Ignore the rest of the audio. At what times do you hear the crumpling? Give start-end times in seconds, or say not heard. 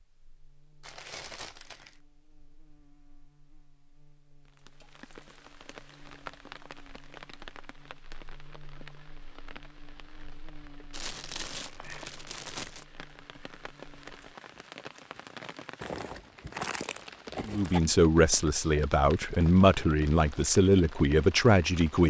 0.8-2.0, 10.9-12.8, 15.8-17.8.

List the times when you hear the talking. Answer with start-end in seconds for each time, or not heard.
17.4-22.0.